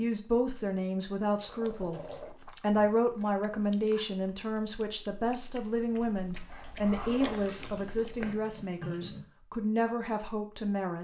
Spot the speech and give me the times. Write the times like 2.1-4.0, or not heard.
0.0-10.9.